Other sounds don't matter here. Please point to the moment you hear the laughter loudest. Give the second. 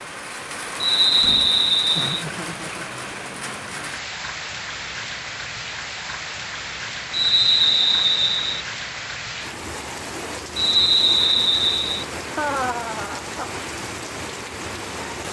13 s.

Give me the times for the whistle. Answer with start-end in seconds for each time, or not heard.
0.8-2.2, 7.1-8.6, 10.6-12.1.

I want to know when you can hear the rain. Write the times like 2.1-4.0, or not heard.
0.0-15.2.